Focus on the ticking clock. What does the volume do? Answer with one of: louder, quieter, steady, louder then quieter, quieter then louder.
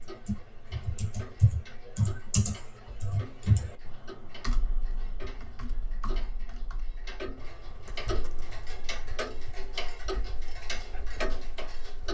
louder.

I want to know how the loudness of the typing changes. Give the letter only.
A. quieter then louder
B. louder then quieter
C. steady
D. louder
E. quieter
E.